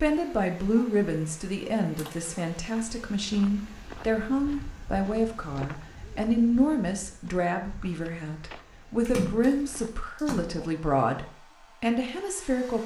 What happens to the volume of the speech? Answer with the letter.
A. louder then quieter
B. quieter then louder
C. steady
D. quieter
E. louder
C.